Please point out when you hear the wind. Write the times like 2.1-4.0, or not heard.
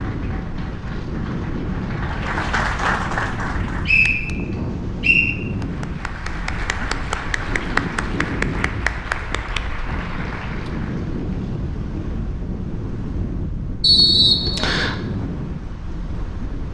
0.0-16.6.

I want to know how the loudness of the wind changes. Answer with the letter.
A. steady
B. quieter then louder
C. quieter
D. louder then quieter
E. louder
A.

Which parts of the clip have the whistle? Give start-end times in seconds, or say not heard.
3.9-5.3, 13.8-14.9.